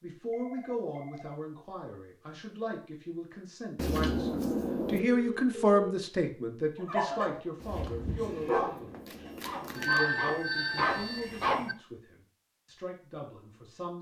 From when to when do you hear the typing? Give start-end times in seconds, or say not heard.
not heard.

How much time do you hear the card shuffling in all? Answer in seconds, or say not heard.
4 s.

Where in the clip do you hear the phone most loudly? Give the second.
10 s.